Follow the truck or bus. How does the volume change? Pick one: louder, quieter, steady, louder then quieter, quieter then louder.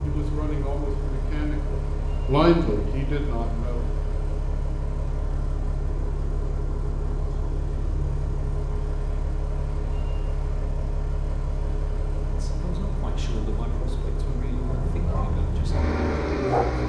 steady.